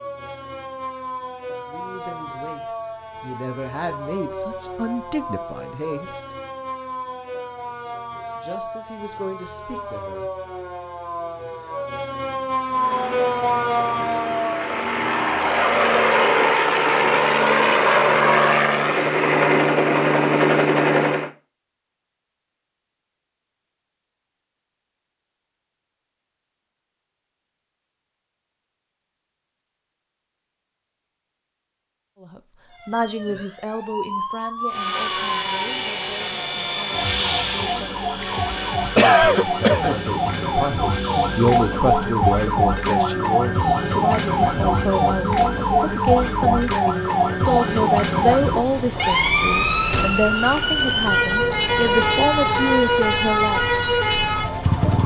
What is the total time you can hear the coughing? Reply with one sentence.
The coughing can be heard for 2 seconds in total.